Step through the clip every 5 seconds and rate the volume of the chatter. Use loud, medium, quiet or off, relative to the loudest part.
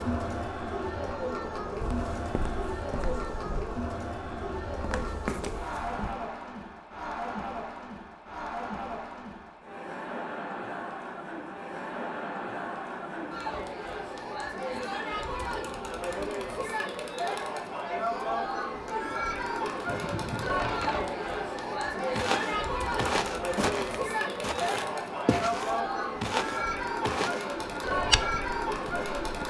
loud, medium, medium, loud, loud, loud.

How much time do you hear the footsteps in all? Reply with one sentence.
The footsteps can be heard for 12 seconds in total.